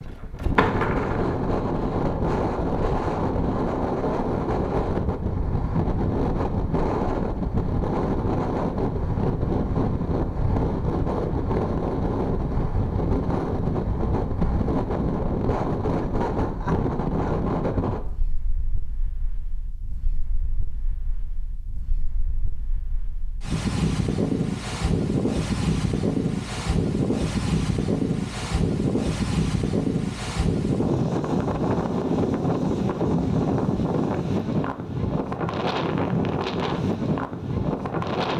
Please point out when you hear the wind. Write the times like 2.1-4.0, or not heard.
0.0-38.3.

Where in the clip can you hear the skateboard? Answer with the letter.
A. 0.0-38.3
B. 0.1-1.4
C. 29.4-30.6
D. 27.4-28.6
B.